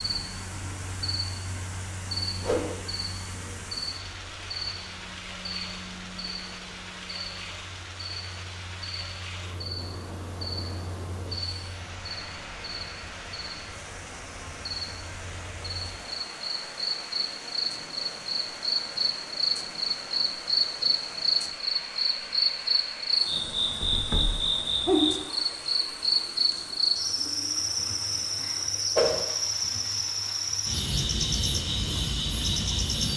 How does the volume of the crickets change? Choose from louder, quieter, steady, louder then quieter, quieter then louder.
louder.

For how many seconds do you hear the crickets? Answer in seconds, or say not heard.
33 s.